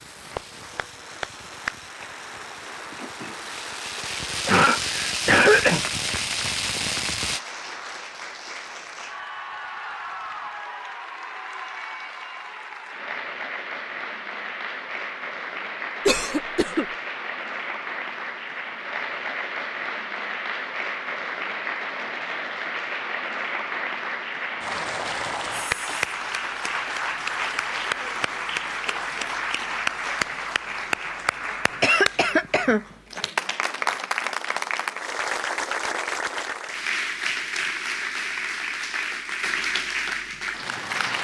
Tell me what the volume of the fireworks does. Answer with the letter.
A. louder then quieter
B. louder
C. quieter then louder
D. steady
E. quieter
B.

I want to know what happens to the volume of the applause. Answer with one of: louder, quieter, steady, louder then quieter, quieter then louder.
louder.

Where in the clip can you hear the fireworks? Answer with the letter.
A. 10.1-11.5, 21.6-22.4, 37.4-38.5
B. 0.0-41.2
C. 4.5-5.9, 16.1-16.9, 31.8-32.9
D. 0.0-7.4
D.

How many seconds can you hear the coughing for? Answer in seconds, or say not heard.
3 s.